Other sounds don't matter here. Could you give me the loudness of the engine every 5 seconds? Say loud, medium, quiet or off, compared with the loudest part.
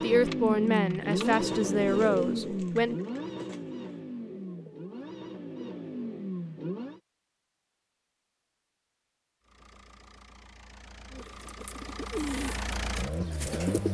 loud, medium, medium.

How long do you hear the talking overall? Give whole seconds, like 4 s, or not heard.
3 s.